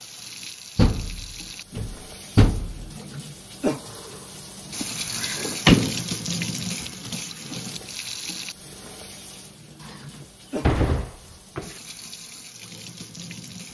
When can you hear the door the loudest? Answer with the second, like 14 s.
6 s.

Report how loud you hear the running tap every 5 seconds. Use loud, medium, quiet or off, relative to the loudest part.
loud, loud, medium.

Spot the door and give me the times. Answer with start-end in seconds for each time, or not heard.
0.8-2.9, 4.8-6.0, 9.8-11.8.